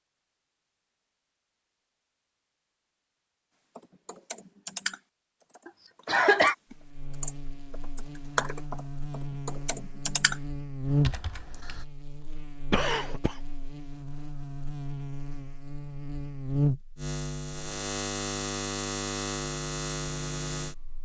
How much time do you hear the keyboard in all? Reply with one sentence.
The keyboard can be heard for 8 seconds in total.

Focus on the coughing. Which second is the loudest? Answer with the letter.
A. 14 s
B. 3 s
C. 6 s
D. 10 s
C.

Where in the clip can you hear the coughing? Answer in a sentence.
The coughing can be heard from 5.7 to 6.5 s and from 12.7 to 13.3 s.